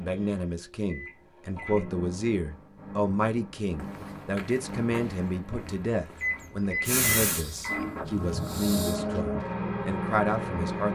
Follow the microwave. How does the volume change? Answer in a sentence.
The loudness of the microwave goes up.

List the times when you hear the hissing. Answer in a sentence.
The hissing can be heard from 6.8 to 9.0 s.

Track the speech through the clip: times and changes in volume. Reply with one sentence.
You can hear the speech from 0.0 to 10.9 s, at a steady volume.